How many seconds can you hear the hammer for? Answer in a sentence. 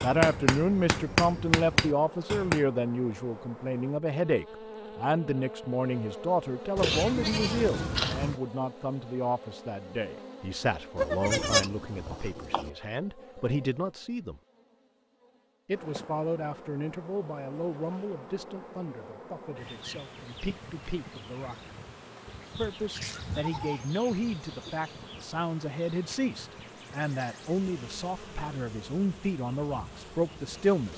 You can hear the hammer for 3 seconds altogether.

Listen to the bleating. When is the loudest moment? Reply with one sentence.
The volume of the bleating peaks at 11 seconds.